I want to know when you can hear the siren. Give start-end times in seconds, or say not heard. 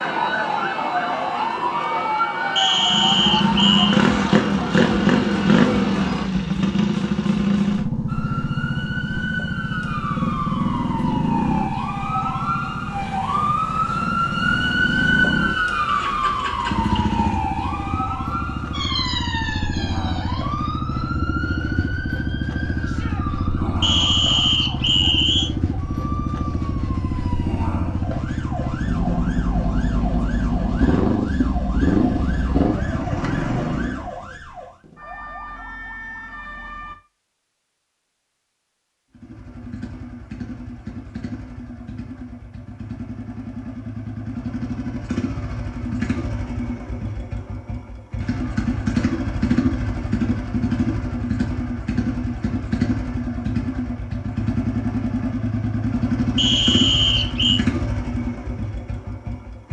0.0-6.3, 8.1-37.0.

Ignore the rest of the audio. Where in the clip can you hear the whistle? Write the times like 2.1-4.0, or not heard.
2.5-4.0, 23.8-25.5, 56.4-57.6.